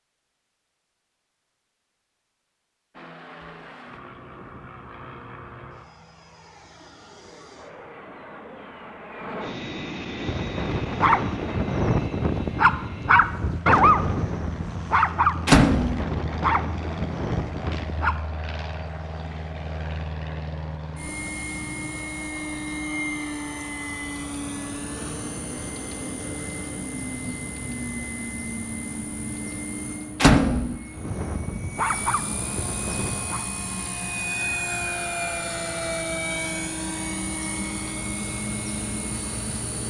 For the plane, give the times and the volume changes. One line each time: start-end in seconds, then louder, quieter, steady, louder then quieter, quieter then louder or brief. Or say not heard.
2.9-39.8 louder.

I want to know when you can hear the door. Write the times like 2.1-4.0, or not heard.
15.4-16.1, 30.2-30.8.